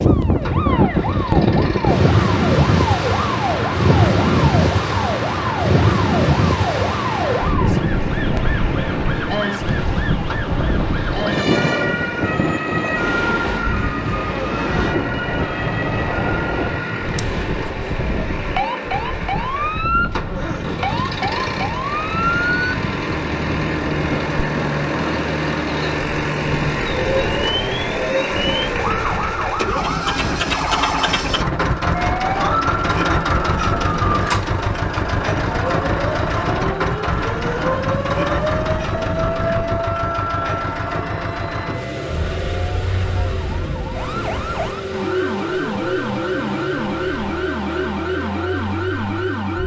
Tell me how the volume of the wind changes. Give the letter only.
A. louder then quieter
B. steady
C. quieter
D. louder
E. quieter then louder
C.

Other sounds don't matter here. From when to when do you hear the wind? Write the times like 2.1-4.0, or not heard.
0.0-39.8.